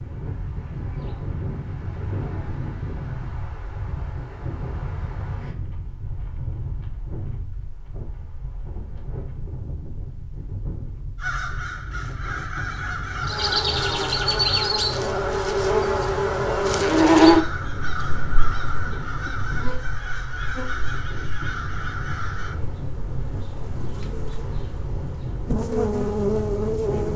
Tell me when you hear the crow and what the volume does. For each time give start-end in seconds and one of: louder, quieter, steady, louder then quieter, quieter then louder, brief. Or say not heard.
11.2-22.6 steady.